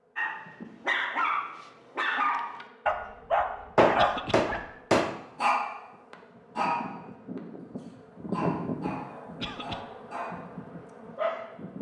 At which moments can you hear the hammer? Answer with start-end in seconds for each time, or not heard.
3.8-5.2.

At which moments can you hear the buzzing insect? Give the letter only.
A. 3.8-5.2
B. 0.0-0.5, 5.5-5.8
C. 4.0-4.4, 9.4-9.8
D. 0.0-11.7
D.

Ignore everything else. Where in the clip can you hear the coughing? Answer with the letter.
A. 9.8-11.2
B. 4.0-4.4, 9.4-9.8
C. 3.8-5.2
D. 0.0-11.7
B.